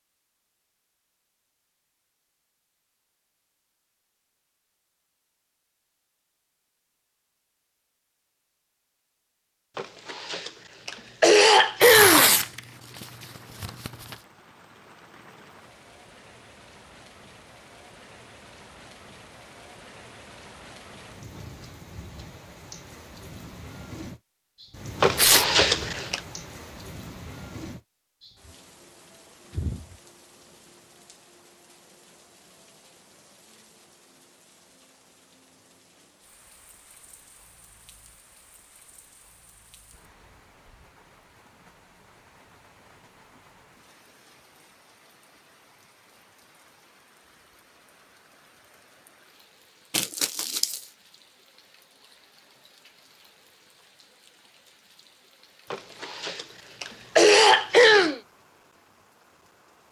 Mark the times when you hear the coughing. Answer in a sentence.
You can hear the coughing from 9.8 to 12.3 s, from 25.0 to 26.2 s and from 55.7 to 58.2 s.